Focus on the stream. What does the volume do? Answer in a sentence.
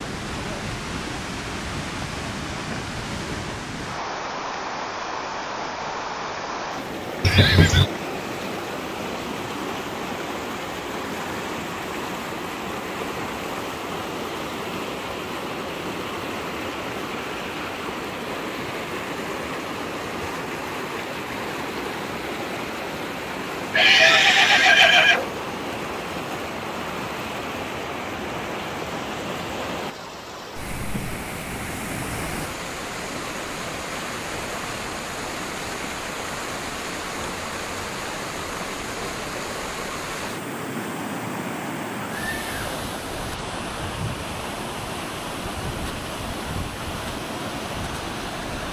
The loudness of the stream stays about the same.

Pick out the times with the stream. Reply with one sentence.
The stream can be heard from 0.0 to 48.6 s.